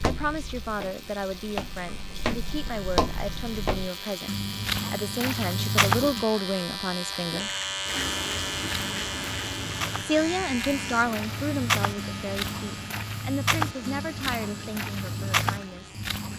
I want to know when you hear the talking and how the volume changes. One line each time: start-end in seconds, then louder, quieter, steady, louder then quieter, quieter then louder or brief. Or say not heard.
0.0-4.3 steady
4.9-7.5 brief
10.0-16.0 quieter.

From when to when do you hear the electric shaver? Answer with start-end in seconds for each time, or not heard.
0.0-16.3.